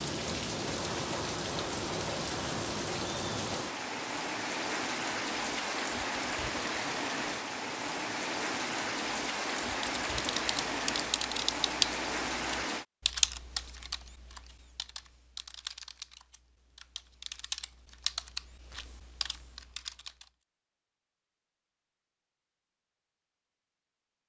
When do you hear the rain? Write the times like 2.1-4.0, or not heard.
0.0-12.8.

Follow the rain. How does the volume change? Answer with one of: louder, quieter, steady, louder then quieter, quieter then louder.
steady.